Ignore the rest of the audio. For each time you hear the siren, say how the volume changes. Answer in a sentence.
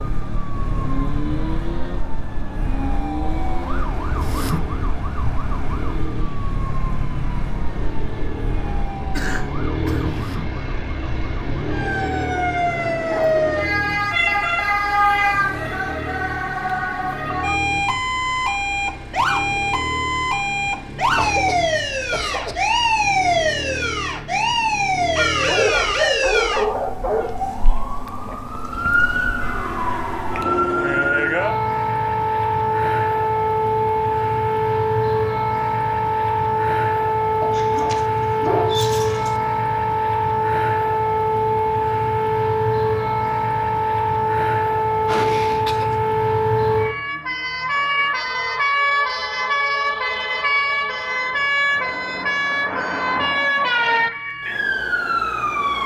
The siren can be heard from 0.0 to 55.8 s, getting louder.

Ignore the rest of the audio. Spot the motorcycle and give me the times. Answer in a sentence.
The motorcycle can be heard from 0.0 to 26.4 s.